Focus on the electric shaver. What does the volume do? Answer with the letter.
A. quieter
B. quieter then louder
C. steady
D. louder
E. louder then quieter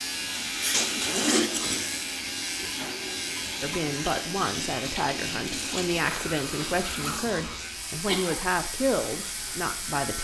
A.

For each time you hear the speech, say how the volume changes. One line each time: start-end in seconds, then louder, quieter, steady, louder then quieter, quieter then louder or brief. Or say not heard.
3.6-10.1 steady.